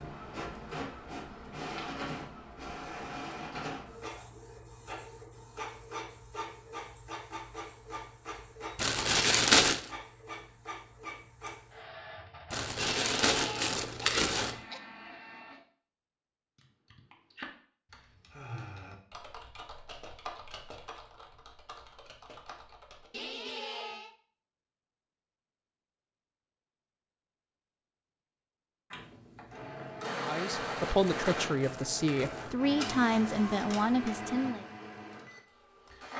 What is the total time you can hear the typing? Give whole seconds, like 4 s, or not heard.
7 s.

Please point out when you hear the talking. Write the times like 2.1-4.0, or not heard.
30.1-34.6.